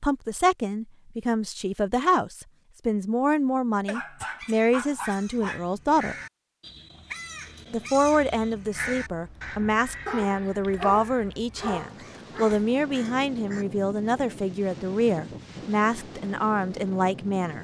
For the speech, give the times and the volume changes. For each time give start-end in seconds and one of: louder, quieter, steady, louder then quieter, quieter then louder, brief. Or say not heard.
0.0-6.2 steady
7.7-17.5 steady.